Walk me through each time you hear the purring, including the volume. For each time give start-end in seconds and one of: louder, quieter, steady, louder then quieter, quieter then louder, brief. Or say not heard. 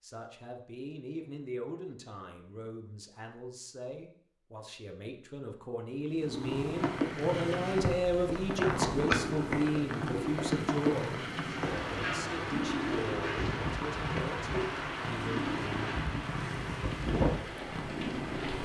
6.0-18.6 steady.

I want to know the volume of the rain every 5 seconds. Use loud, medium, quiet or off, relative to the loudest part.
off, loud, loud, loud.